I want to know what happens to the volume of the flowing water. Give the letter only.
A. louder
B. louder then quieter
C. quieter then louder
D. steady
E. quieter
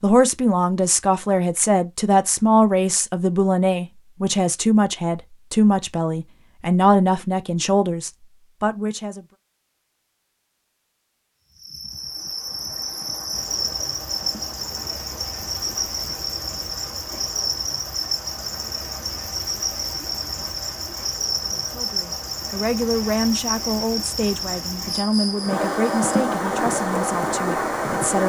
A.